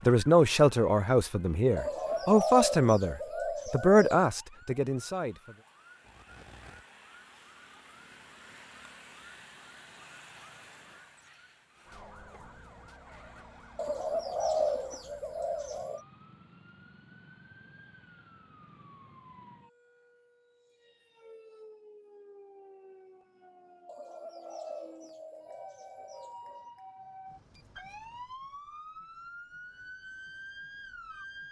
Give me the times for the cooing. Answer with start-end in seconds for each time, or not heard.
1.8-4.2, 13.8-16.0, 23.9-26.6.